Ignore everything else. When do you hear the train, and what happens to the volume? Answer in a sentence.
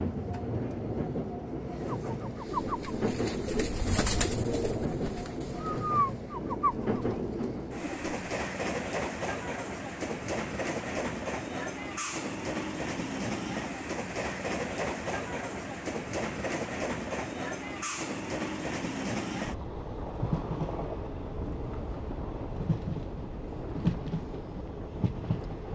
The train can be heard from 0.0 to 25.6 s, at a steady volume.